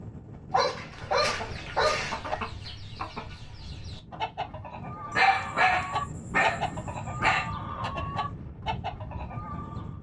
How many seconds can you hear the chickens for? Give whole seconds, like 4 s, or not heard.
9 s.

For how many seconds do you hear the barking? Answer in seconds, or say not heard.
4 s.